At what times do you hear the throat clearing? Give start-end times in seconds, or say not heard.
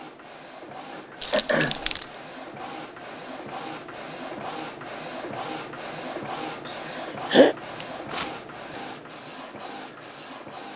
0.9-1.8, 6.7-7.5.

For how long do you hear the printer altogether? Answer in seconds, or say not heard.
11 s.